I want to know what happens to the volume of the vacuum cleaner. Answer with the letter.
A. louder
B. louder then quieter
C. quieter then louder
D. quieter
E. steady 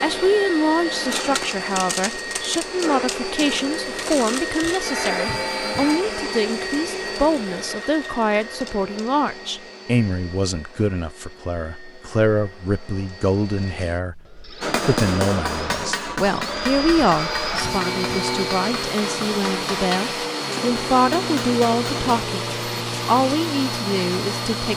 C.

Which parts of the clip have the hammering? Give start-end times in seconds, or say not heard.
14.6-22.1.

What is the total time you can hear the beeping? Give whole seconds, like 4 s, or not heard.
3 s.